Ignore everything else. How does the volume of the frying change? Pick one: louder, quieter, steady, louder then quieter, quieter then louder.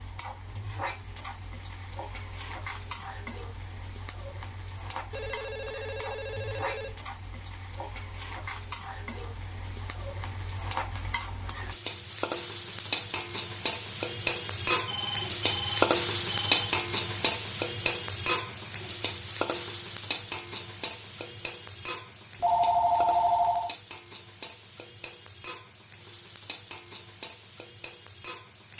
louder then quieter.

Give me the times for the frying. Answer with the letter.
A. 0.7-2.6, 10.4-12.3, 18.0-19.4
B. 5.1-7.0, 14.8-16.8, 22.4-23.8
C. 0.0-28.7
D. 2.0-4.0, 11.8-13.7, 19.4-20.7
C.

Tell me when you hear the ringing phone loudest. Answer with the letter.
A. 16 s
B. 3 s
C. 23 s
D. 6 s
C.